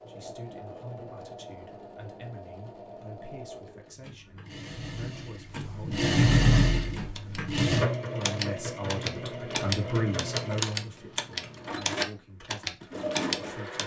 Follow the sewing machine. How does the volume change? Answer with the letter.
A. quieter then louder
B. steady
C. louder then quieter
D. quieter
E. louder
C.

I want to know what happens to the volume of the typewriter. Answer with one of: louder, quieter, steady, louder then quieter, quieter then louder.
steady.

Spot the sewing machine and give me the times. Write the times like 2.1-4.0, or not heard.
0.0-13.8.